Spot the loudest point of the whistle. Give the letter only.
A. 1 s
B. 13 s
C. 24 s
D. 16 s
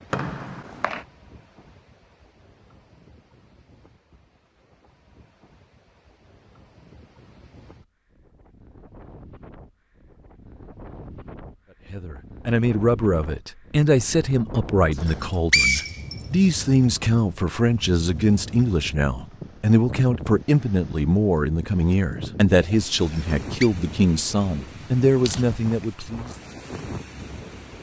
D.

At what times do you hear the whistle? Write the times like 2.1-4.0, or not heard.
0.1-1.1, 15.0-16.1, 23.0-23.7.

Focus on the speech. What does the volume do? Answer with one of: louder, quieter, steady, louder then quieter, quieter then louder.
steady.